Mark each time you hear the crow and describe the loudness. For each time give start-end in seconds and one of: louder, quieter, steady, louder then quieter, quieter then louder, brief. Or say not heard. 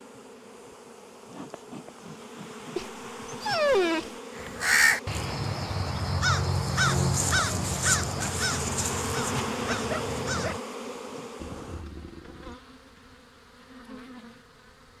4.3-10.6 quieter.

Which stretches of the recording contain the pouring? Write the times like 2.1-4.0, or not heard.
11.3-12.6.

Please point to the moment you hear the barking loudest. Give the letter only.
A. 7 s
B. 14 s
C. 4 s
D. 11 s
C.